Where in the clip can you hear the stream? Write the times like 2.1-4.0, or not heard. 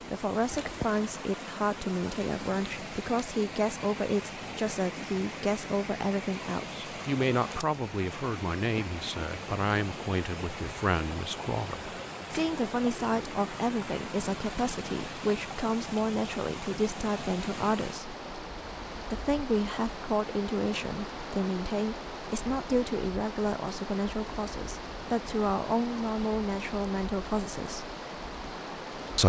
0.0-29.2.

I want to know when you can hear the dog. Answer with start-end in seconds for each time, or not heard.
not heard.